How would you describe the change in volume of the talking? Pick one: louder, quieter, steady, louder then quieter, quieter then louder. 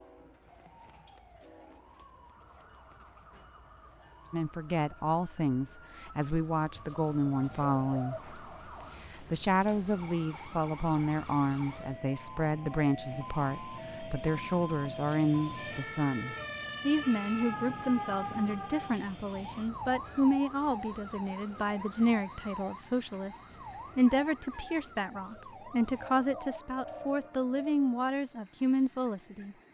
steady.